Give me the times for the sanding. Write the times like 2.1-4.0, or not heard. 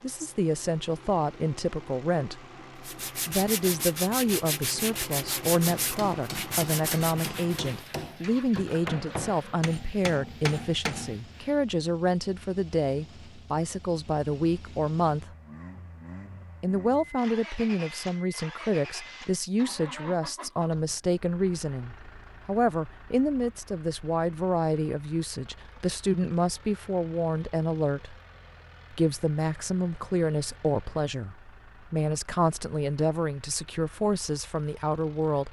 2.9-11.6.